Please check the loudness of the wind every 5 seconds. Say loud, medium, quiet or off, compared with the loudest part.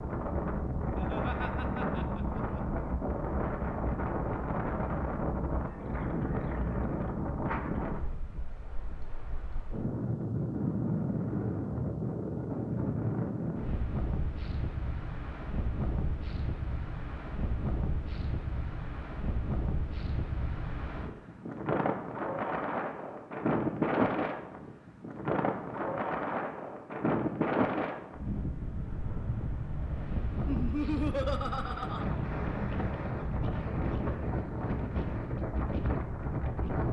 loud, loud, loud, medium, loud, loud, loud, loud.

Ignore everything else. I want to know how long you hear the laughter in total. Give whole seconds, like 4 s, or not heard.
3 s.